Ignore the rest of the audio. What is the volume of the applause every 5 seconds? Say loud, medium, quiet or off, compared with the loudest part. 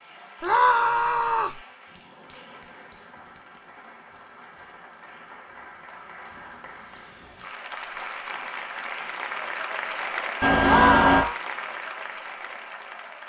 quiet, loud, loud.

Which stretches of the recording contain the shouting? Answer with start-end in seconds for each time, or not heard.
0.4-1.6, 10.6-11.4.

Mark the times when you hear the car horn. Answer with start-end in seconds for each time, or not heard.
10.4-11.2.